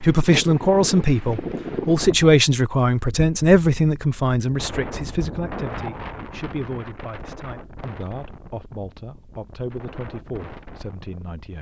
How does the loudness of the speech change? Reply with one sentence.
The loudness of the speech goes down.